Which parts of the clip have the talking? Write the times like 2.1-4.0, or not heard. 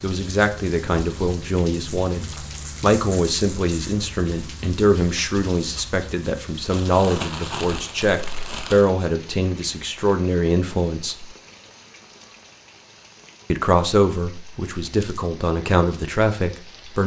0.0-11.3, 13.5-17.0.